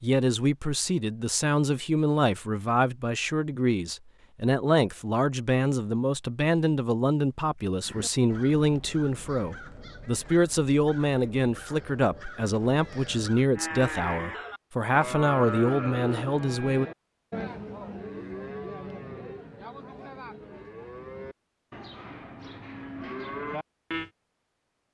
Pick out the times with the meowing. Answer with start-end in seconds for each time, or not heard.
not heard.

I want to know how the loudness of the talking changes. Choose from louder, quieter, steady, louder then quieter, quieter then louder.
steady.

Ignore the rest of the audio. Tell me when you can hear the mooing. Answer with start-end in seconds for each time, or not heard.
13.6-24.1.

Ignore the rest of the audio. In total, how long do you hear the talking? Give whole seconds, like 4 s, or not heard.
17 s.